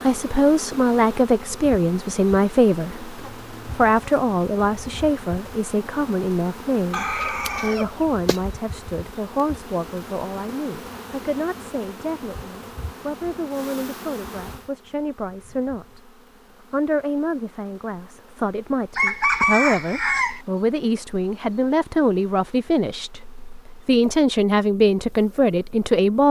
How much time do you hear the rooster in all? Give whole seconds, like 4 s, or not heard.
3 s.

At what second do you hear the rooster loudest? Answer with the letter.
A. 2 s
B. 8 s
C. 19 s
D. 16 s
C.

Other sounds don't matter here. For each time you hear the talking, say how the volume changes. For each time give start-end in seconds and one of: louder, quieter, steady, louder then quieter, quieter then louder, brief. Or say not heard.
0.0-16.1 quieter
16.7-26.2 louder.